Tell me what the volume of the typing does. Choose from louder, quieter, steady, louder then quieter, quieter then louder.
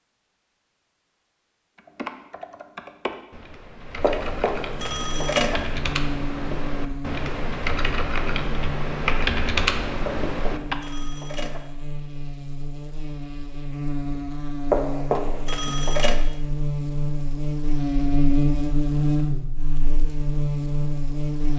louder.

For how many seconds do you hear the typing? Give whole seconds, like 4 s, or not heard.
9 s.